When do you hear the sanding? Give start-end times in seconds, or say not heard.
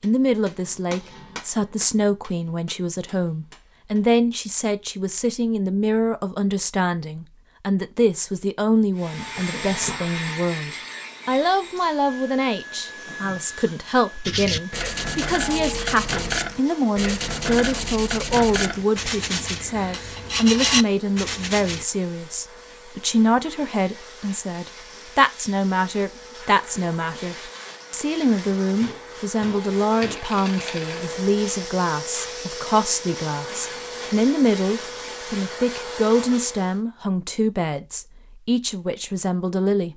14.2-21.9.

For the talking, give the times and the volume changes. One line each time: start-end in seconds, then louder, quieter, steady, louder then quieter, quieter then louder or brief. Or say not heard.
0.0-39.9 steady.